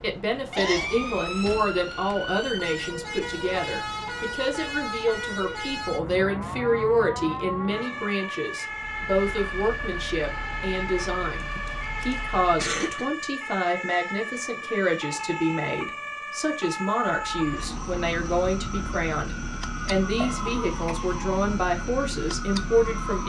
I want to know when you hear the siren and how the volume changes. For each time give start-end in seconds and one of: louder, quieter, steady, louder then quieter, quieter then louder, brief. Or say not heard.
0.0-23.2 steady.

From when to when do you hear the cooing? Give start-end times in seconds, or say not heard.
not heard.